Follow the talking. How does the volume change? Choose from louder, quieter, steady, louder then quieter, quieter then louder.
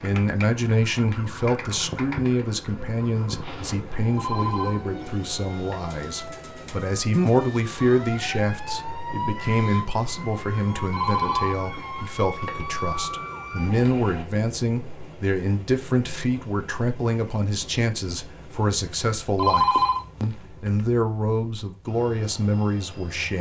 steady.